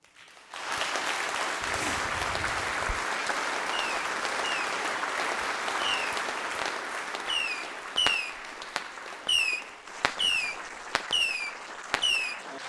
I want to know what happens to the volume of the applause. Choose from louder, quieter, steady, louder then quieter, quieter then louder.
quieter.